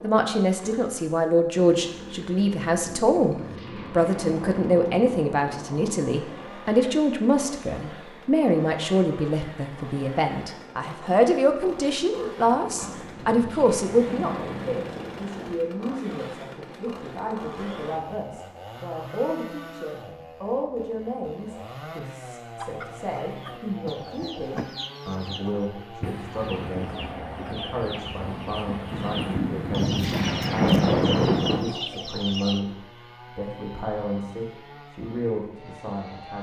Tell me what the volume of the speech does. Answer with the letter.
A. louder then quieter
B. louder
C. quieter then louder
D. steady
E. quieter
E.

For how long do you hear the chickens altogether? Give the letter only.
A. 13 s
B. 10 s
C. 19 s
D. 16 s
B.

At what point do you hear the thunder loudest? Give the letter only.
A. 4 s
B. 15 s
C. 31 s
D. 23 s
C.